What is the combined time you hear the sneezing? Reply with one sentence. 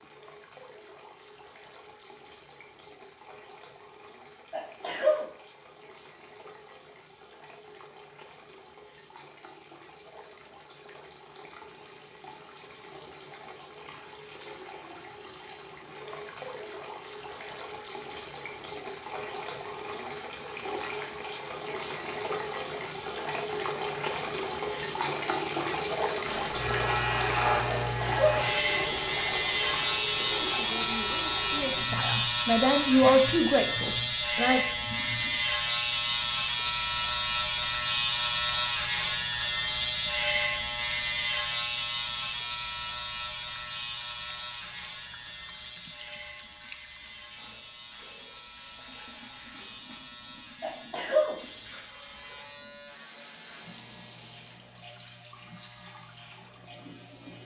You can hear the sneezing for 2 seconds altogether.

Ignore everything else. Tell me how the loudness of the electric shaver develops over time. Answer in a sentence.
The loudness of the electric shaver goes down.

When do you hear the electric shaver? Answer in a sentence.
The electric shaver can be heard from 26.2 to 57.4 s.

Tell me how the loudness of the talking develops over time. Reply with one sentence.
The volume of the talking goes up, then down.